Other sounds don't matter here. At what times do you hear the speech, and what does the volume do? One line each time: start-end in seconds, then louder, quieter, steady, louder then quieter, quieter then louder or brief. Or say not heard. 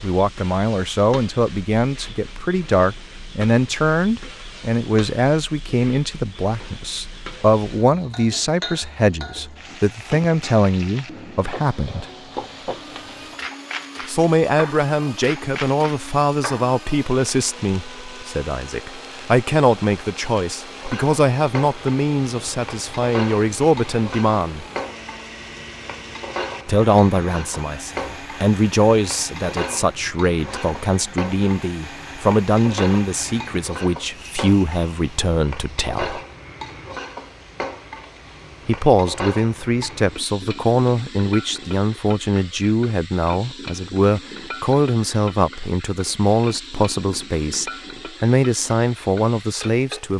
0.0-12.1 steady
14.1-24.6 steady
26.6-36.2 steady
38.6-50.1 steady.